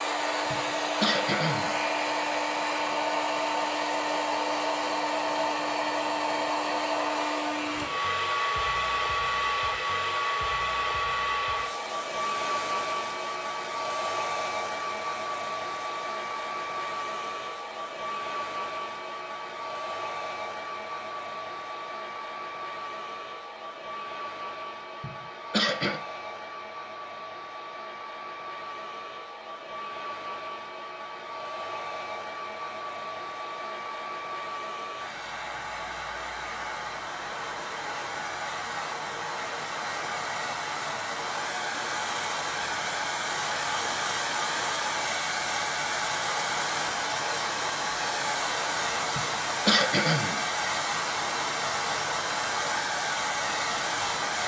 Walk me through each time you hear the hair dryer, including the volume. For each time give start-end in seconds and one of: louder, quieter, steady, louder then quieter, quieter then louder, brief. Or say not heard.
0.0-54.4 quieter then louder.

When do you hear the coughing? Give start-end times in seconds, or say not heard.
0.5-1.8, 25.0-26.0, 49.1-50.4.